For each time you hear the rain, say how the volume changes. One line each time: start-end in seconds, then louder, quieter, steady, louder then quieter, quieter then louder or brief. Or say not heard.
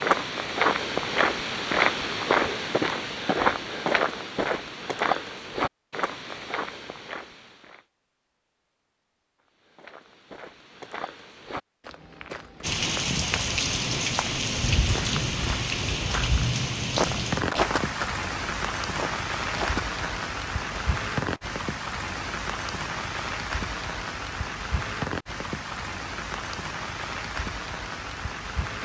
12.6-28.7 quieter.